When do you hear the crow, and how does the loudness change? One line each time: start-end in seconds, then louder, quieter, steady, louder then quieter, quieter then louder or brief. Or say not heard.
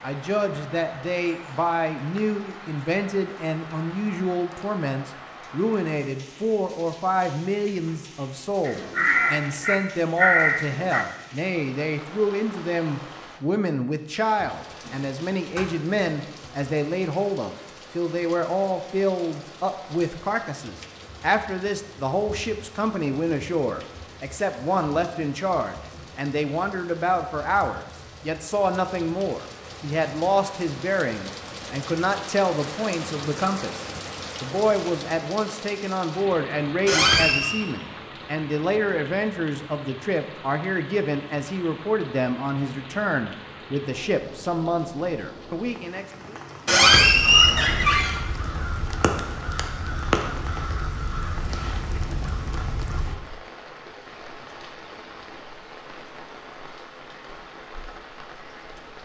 8.7-11.1 brief
47.0-53.1 louder then quieter.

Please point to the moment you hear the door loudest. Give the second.
47 s.